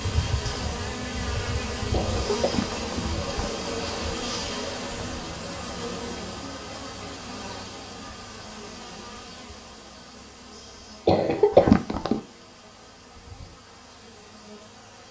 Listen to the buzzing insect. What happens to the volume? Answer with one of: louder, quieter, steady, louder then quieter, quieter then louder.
quieter.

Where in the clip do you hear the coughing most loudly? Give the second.
12 s.